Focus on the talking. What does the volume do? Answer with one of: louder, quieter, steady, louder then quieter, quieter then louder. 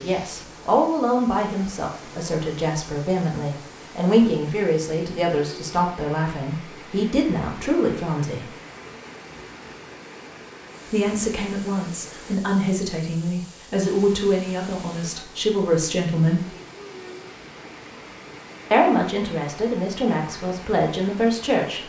steady.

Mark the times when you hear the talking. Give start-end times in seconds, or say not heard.
0.0-8.5, 10.9-16.5, 18.7-21.8.